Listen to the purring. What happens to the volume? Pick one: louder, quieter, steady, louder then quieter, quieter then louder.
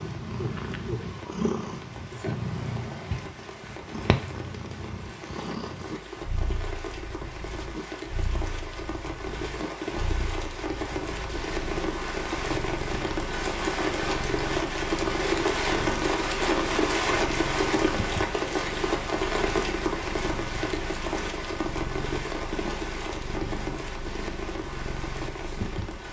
quieter.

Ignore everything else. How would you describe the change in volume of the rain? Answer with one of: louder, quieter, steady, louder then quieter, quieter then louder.
louder then quieter.